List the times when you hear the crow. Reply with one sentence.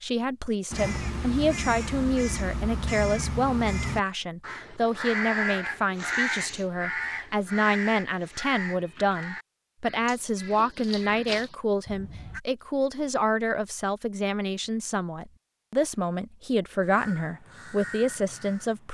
You can hear the crow from 0.7 to 12.4 s and from 16.8 to 18.9 s.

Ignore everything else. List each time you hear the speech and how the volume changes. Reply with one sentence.
You can hear the speech from 0.0 to 18.9 s, at a steady volume.